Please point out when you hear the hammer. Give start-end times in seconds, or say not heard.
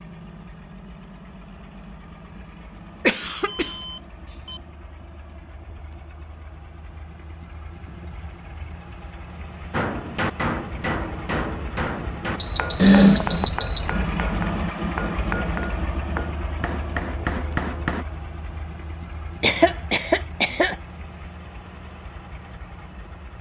9.7-18.1.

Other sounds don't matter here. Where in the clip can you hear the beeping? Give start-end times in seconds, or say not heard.
3.0-4.5, 12.4-13.9.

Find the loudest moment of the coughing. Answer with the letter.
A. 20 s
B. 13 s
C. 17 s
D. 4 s
B.